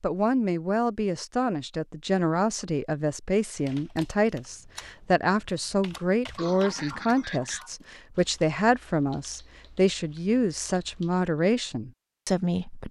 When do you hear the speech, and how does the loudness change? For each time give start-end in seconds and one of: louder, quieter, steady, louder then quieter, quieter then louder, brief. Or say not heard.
0.0-12.8 steady.